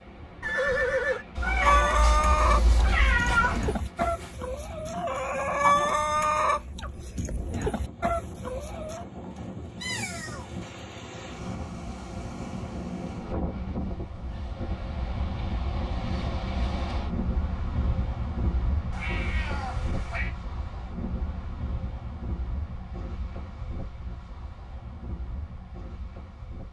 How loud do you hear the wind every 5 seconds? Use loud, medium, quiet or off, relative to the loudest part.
medium, medium, loud, loud, medium, medium.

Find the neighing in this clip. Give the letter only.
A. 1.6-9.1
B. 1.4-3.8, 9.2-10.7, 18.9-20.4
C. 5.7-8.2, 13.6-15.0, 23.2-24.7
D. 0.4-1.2
D.